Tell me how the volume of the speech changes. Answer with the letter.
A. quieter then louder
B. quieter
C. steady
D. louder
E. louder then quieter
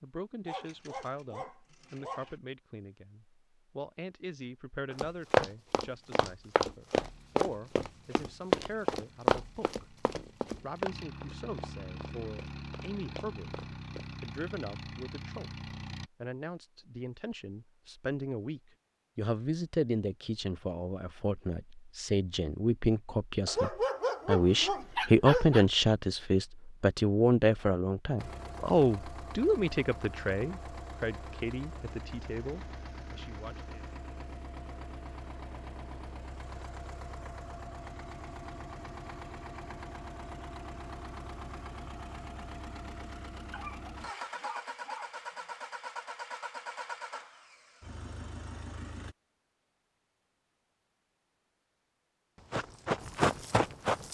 D.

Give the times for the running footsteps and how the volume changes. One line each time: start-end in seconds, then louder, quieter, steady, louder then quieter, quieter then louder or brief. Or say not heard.
4.9-14.1 quieter
52.5-54.0 brief.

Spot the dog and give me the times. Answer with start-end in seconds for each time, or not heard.
0.5-2.4, 23.4-25.6, 43.5-45.1.